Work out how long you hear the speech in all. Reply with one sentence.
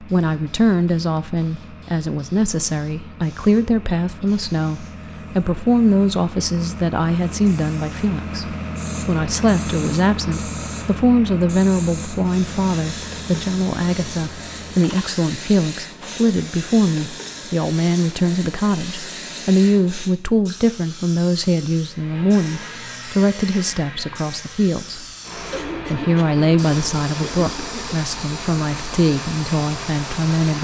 The speech can be heard for 30 seconds in total.